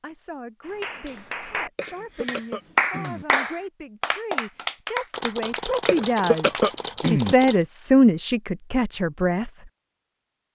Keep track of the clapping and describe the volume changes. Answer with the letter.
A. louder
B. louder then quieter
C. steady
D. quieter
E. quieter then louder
B.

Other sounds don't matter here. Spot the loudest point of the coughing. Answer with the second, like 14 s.
6 s.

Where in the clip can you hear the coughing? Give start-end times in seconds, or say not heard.
1.8-3.2, 5.8-7.3.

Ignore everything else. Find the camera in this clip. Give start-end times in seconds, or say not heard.
5.2-7.7.